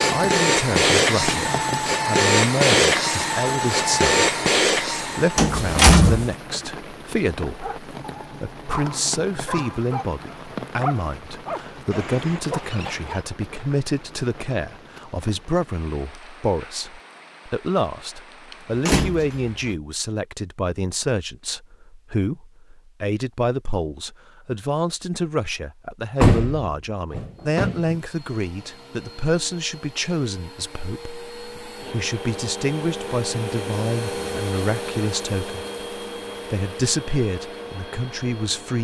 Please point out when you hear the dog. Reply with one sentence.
The dog can be heard from 7.5 to 13.2 s.